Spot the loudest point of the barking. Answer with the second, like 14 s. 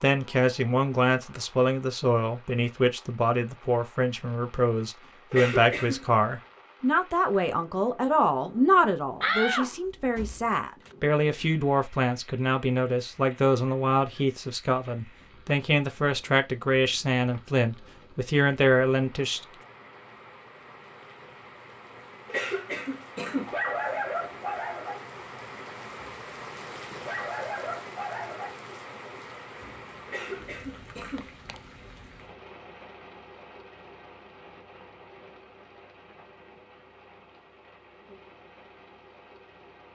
24 s.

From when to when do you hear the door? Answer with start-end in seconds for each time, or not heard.
9.2-10.9, 31.1-31.6.